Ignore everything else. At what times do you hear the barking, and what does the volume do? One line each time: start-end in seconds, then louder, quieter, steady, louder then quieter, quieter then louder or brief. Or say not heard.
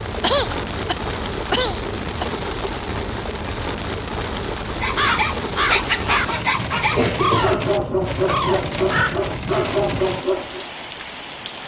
4.7-10.7 steady.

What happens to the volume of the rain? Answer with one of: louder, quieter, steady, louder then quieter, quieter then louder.
steady.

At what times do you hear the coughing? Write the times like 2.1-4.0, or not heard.
0.2-2.2, 7.0-8.4.